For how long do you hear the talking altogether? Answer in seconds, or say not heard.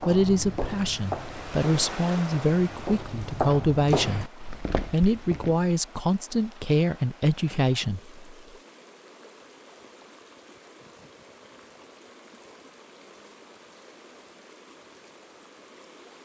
8 s.